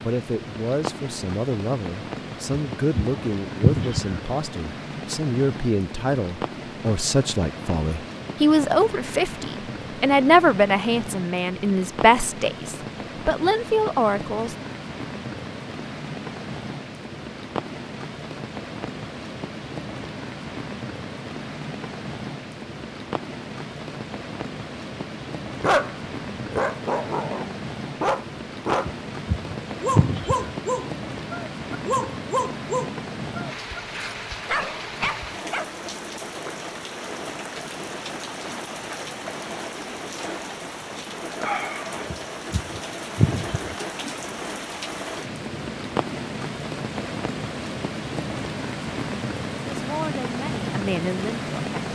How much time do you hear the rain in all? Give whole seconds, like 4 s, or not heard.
52 s.